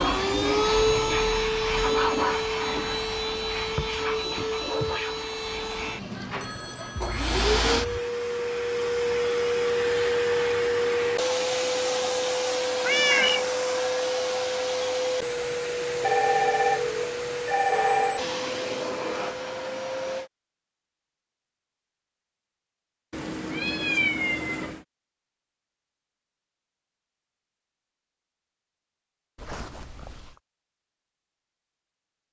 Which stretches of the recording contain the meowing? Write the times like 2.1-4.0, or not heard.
12.8-13.5, 23.1-24.9.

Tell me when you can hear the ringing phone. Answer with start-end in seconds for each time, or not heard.
6.4-8.0, 16.0-18.2, 29.4-30.4.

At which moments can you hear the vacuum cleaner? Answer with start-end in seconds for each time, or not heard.
0.0-20.3.